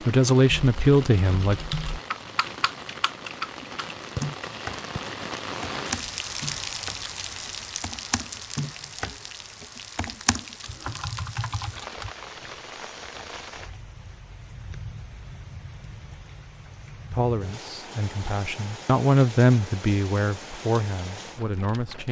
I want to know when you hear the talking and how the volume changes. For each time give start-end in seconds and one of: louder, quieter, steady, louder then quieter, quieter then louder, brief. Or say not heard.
0.1-1.6 brief
17.1-22.0 louder then quieter.